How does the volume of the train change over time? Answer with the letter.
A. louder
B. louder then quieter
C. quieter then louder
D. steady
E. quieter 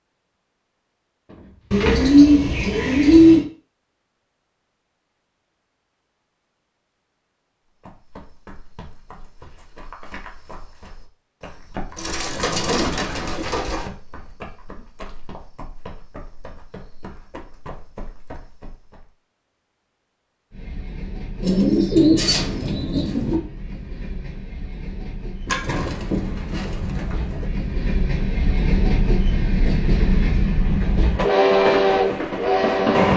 A.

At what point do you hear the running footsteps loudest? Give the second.
12 s.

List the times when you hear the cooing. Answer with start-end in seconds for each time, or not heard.
1.7-3.5, 11.9-13.8, 21.4-23.4, 25.4-27.4.